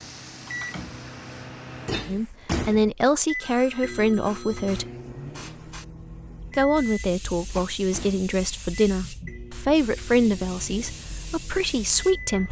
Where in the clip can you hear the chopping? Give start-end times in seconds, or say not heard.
not heard.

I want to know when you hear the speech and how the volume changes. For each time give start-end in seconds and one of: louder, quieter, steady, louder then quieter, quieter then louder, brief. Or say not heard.
2.0-4.8 brief
6.5-12.4 steady.